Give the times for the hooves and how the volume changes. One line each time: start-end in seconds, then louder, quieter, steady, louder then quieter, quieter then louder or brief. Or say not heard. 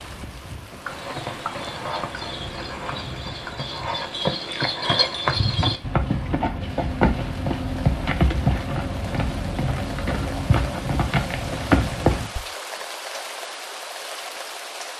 0.8-12.4 louder.